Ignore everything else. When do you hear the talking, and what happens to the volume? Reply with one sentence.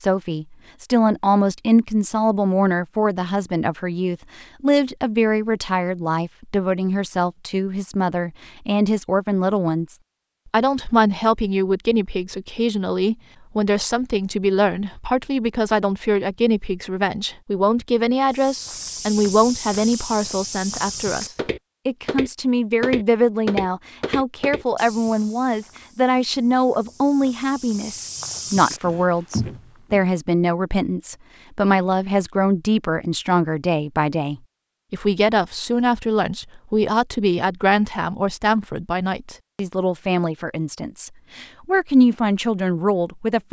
You can hear the talking from 0.0 to 43.4 s, at a steady volume.